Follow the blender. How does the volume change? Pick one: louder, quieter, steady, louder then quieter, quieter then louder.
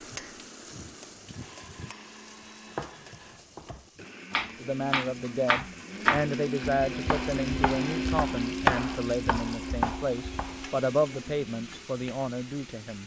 louder then quieter.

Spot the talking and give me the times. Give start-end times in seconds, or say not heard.
4.6-13.0.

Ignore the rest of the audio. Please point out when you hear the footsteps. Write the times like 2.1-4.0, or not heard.
not heard.